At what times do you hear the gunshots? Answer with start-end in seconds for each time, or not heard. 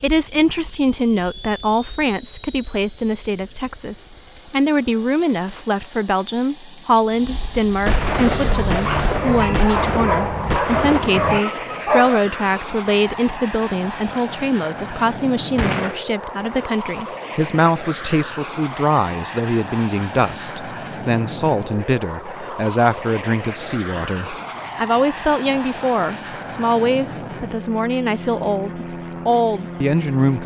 7.8-11.4, 15.6-16.1.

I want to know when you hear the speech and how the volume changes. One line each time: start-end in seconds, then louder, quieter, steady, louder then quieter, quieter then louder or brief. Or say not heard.
0.0-30.4 steady.